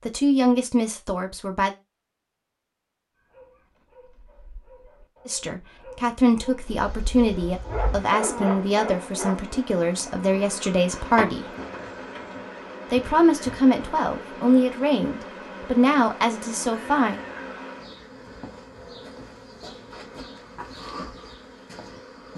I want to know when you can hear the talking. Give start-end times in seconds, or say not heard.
0.1-1.8, 5.2-11.4, 12.9-17.2.